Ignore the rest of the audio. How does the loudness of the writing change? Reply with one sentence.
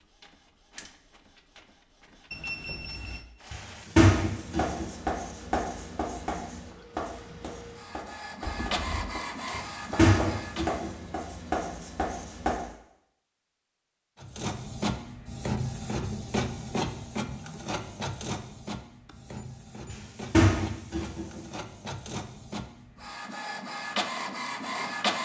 The volume of the writing goes down, then up.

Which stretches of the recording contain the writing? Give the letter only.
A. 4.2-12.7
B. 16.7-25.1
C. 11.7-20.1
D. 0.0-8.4
A.